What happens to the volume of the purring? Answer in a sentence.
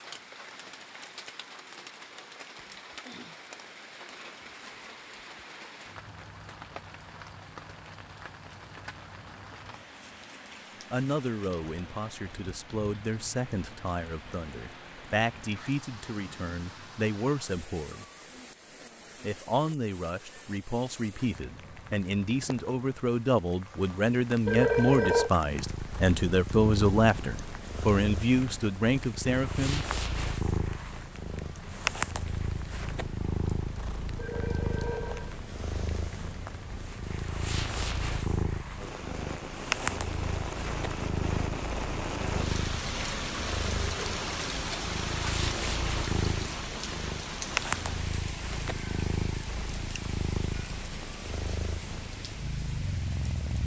The volume of the purring stays about the same.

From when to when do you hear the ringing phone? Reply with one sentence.
The ringing phone can be heard from 24.4 to 25.3 s and from 34.1 to 35.4 s.